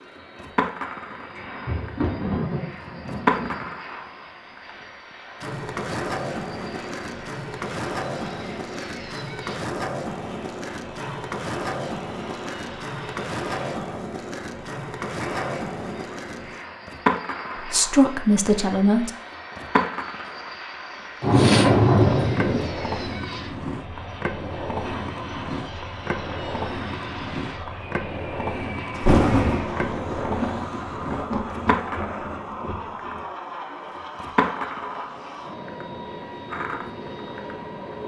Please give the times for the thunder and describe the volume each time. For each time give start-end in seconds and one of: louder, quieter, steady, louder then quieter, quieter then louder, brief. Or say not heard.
1.1-3.7 brief
21.2-22.7 brief
28.9-33.2 quieter.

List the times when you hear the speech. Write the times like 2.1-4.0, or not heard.
17.6-19.1.